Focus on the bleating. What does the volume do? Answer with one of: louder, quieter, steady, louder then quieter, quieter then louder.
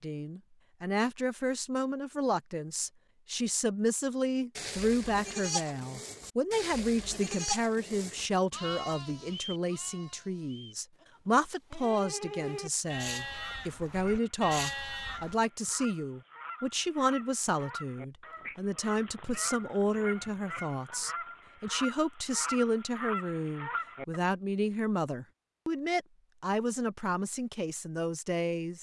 quieter then louder.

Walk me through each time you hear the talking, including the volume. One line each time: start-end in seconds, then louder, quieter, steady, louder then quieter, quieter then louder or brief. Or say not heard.
0.0-28.7 steady.